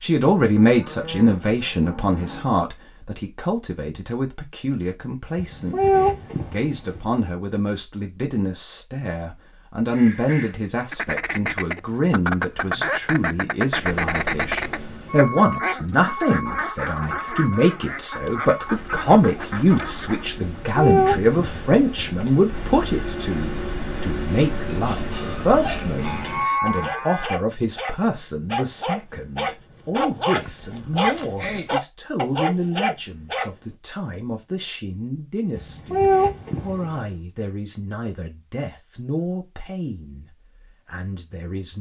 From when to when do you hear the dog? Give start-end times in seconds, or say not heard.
24.6-33.5.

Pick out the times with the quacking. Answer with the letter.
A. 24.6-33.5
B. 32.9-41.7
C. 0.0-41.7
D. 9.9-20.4
D.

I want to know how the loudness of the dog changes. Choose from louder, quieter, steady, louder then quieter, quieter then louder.
louder.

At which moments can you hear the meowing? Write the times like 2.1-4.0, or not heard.
5.3-7.0, 20.4-22.3, 35.5-37.1.